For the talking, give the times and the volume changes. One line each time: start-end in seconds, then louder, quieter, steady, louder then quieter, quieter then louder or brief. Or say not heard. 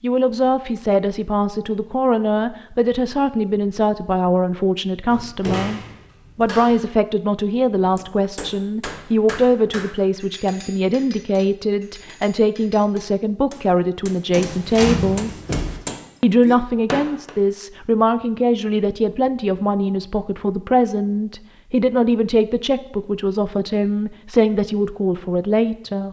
0.0-15.3 steady
16.2-26.0 steady.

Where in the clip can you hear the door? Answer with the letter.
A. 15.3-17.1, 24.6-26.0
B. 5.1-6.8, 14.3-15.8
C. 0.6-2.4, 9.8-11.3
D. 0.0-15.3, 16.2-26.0
B.